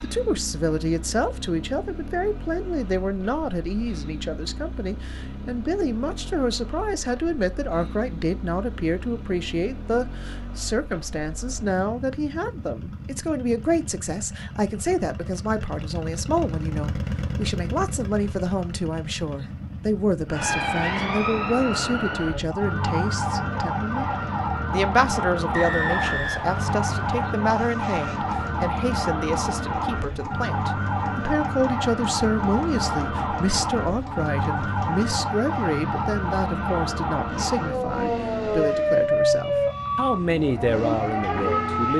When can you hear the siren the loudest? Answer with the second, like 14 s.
39 s.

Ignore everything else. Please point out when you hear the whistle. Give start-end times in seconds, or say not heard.
25.5-27.2.